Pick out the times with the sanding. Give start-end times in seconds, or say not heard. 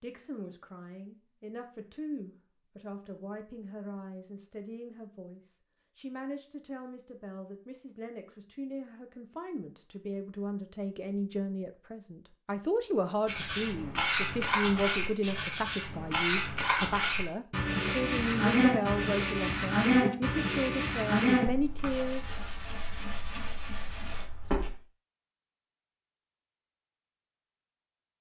13.2-24.7.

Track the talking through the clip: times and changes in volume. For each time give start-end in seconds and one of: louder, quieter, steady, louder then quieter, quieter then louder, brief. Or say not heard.
0.0-22.3 louder.